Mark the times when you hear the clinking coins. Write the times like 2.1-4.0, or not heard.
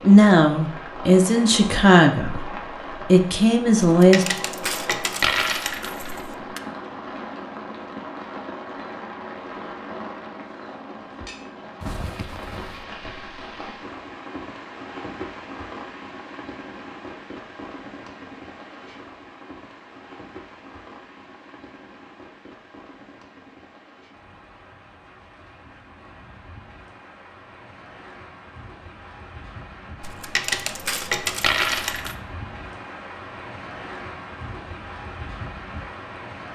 3.8-6.6, 30.0-32.1.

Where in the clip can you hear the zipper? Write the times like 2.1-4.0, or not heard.
11.8-12.8.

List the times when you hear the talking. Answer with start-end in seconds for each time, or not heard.
0.0-4.2.